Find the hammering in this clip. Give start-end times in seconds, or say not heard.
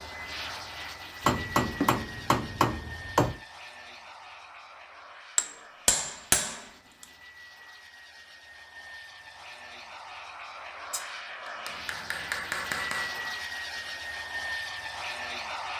1.2-3.4, 5.3-6.6, 10.9-13.3.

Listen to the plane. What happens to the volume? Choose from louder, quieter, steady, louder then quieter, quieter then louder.
quieter then louder.